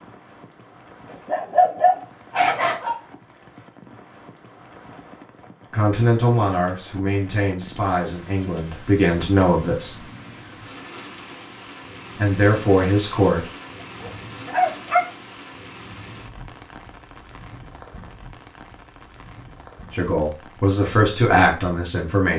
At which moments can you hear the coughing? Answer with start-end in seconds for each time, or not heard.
not heard.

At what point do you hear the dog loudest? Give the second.
2 s.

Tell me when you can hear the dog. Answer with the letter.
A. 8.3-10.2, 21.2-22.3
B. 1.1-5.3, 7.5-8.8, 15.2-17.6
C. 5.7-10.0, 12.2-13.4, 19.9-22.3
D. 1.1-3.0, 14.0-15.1
D.